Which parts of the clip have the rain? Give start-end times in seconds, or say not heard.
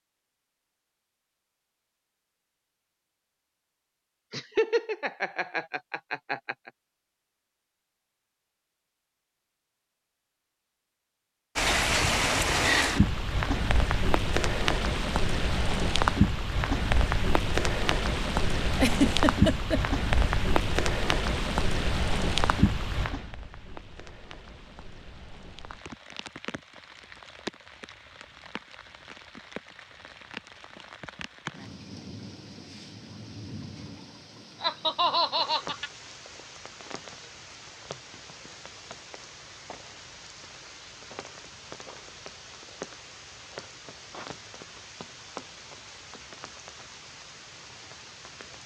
11.6-48.6.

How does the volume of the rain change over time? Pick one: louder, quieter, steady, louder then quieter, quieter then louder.
quieter.